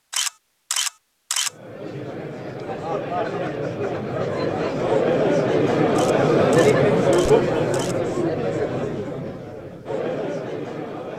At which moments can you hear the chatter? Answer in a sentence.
The chatter can be heard from 1.4 to 11.1 s.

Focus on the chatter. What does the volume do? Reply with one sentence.
The loudness of the chatter goes up, then down.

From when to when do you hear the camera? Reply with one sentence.
You can hear the camera from 0.1 to 1.5 s and from 6.0 to 8.0 s.